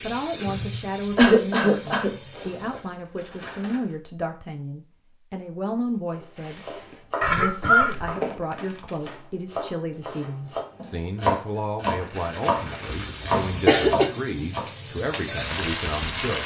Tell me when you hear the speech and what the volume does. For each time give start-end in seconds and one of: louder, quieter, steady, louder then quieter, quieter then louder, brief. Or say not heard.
0.0-16.4 steady.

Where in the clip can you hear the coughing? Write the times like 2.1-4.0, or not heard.
1.1-2.1, 7.2-8.1, 12.9-14.1.